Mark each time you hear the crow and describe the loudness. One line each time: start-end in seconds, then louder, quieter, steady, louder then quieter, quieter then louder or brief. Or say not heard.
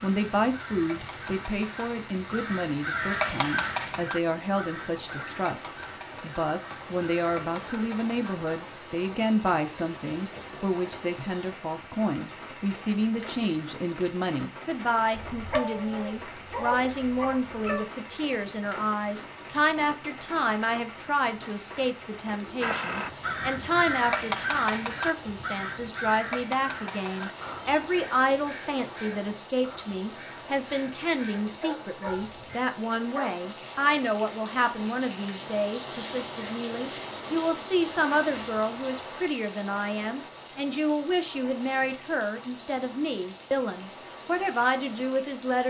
0.0-8.6 louder then quieter
22.6-32.6 quieter.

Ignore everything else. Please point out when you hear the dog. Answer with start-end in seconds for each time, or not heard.
15.2-17.9, 31.4-33.4.